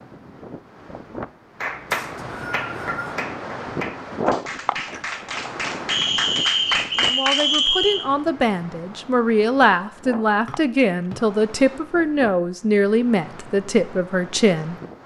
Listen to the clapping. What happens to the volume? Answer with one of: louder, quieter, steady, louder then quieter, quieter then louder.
louder.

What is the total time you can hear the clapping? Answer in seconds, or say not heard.
6 s.